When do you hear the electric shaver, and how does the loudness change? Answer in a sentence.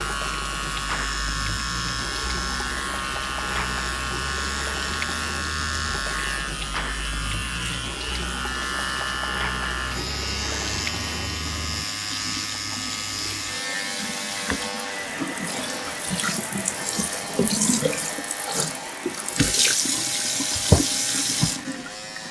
The electric shaver can be heard from 0.0 to 22.2 s, getting quieter.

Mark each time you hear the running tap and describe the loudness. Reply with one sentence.
You can hear the running tap from 0.0 to 22.2 s, getting louder.